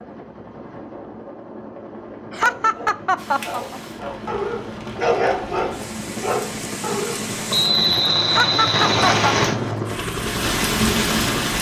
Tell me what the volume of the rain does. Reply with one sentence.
The volume of the rain goes up.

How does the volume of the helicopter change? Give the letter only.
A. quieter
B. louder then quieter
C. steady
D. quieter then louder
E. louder
E.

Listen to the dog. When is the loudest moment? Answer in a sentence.
The volume of the dog peaks at 5 seconds.